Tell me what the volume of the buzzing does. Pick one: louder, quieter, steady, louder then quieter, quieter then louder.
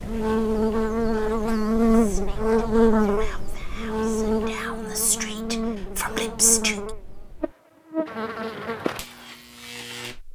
quieter.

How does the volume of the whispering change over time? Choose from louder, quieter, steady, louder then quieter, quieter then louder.
louder.